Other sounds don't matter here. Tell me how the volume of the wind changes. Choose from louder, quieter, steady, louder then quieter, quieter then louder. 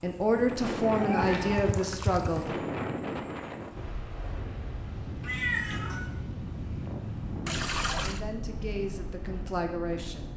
quieter.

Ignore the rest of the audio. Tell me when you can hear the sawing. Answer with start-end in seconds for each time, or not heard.
not heard.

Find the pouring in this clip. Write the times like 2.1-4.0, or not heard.
1.4-2.5, 7.5-8.2.